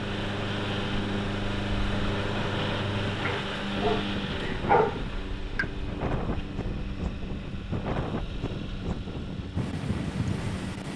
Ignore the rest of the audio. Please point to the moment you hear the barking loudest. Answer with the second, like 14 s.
5 s.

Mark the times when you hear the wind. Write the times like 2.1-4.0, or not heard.
0.0-10.9.